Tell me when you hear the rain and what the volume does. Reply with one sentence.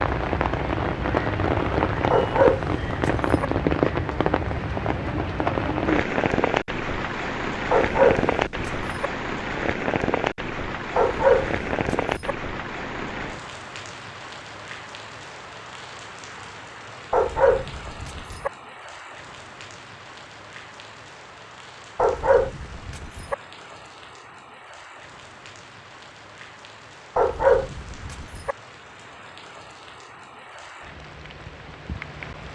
You can hear the rain from 0.0 to 32.4 s, getting quieter.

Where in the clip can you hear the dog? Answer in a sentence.
The dog can be heard from 2.1 to 3.5 s, from 7.7 to 9.1 s, from 10.9 to 12.3 s, from 17.1 to 18.5 s, from 21.9 to 23.4 s and from 27.1 to 28.6 s.